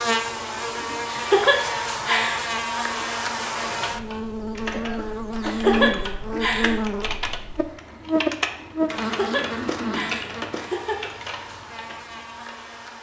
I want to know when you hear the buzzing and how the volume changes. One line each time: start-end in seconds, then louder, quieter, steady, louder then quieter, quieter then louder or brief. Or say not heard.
0.0-12.9 quieter.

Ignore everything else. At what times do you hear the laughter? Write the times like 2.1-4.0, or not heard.
1.1-2.5, 5.4-6.8, 9.0-11.1.